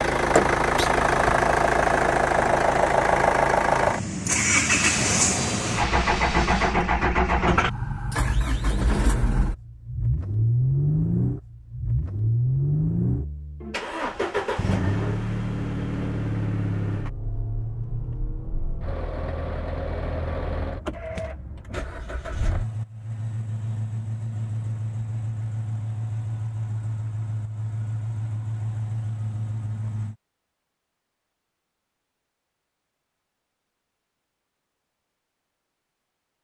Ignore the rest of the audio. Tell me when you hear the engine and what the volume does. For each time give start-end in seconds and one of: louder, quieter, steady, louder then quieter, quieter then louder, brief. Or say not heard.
0.0-30.1 quieter.